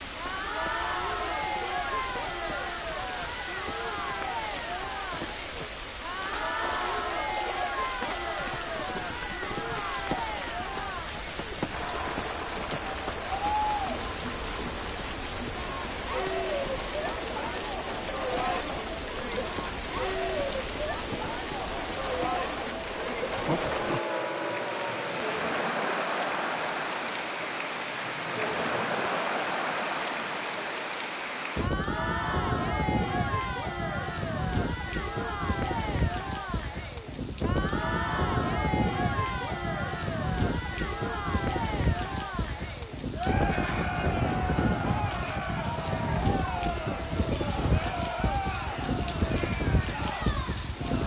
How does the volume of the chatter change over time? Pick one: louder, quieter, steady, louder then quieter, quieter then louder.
steady.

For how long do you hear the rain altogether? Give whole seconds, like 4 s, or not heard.
51 s.